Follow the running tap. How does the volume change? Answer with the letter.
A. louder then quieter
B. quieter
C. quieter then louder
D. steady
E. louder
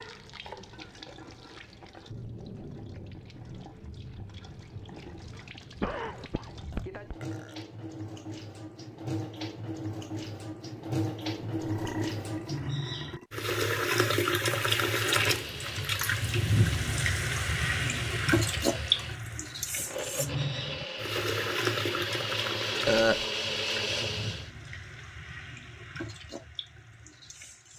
A.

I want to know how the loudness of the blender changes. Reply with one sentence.
The volume of the blender goes up.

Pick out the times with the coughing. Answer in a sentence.
The coughing can be heard from 5.8 to 7.2 s.